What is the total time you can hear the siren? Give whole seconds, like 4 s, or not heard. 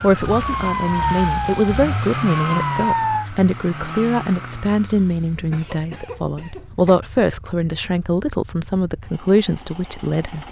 3 s.